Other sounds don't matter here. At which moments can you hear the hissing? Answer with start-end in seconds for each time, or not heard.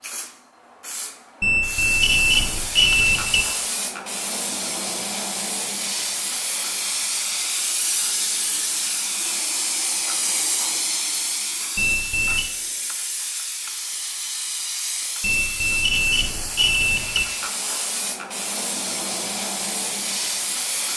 0.0-20.9.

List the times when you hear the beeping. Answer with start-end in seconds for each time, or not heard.
1.4-3.5, 11.8-12.5, 15.2-17.2.